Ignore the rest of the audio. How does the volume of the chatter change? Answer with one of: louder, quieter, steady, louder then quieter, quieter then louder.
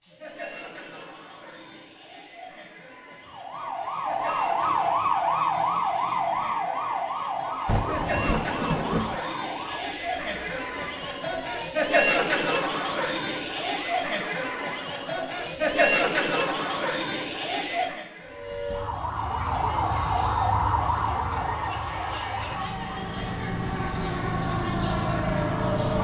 louder then quieter.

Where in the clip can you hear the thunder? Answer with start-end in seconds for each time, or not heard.
7.7-9.2.